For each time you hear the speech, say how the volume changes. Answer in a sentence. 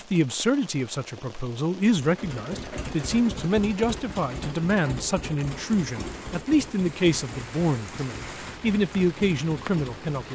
You can hear the speech from 0.0 to 10.3 s, at a steady volume.